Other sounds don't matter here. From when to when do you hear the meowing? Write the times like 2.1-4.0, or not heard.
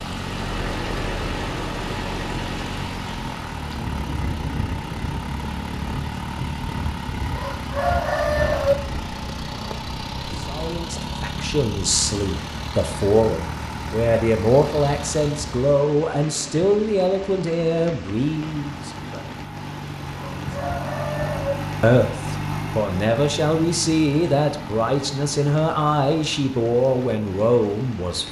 not heard.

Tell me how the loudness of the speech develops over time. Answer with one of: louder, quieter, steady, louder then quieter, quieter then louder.
steady.